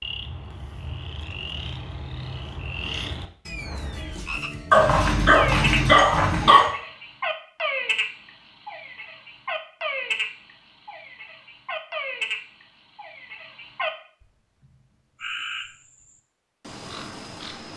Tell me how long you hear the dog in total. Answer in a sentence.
The dog can be heard for 2 seconds in total.